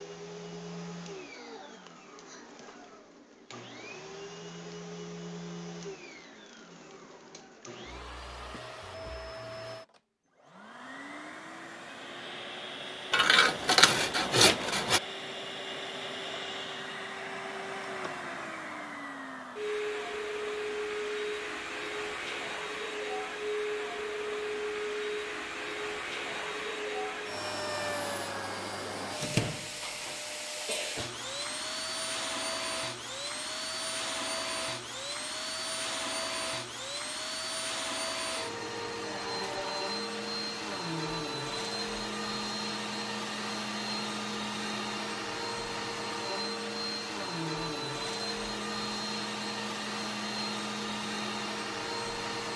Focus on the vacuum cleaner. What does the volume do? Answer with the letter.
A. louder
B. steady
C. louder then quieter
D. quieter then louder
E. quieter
A.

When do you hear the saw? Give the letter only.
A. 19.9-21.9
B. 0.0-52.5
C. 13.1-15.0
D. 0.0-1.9
C.